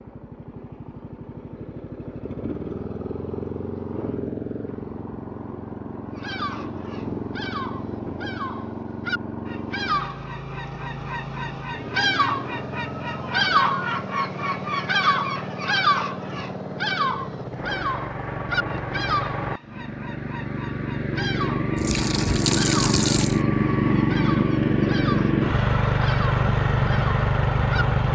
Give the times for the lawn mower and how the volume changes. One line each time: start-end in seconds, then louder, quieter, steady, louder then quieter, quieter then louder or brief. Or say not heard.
0.0-28.1 louder.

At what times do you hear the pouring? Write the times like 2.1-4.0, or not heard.
21.8-23.4.